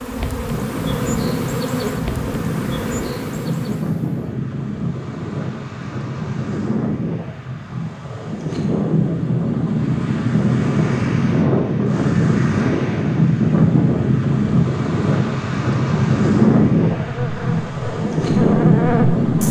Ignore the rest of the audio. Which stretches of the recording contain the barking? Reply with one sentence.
You can't hear the barking here.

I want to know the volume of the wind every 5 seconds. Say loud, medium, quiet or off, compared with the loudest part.
medium, medium, loud, loud.